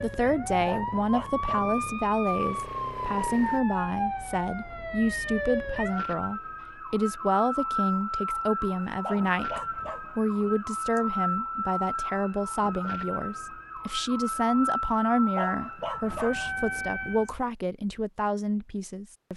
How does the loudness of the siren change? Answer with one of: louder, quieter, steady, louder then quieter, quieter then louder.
steady.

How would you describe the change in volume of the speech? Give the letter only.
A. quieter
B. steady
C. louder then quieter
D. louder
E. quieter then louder
B.